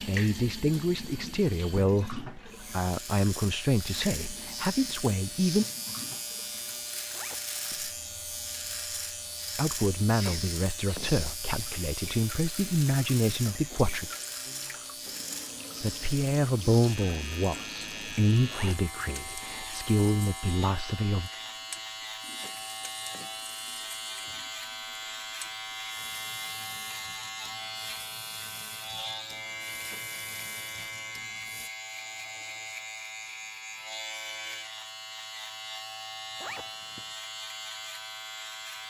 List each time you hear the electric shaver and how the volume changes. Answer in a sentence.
You can hear the electric shaver from 2.5 to 38.8 s, at a steady volume.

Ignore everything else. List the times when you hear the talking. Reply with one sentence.
The talking can be heard from 0.0 to 5.7 s, from 9.6 to 14.1 s and from 15.8 to 21.3 s.